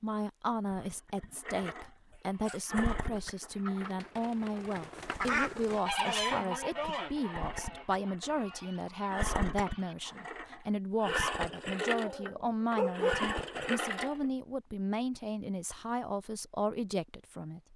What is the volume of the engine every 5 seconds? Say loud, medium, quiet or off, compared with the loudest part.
medium, medium, loud, off.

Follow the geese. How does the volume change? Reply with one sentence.
The loudness of the geese goes up, then down.